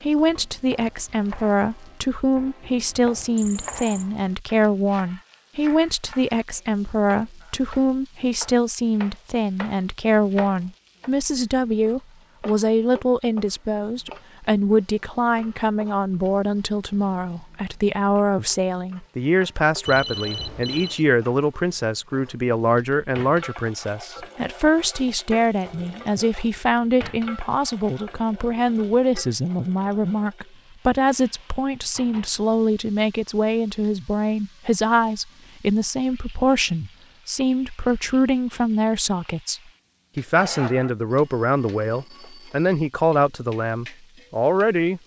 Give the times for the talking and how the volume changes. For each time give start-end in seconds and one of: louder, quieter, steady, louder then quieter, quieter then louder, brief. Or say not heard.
0.0-45.0 steady.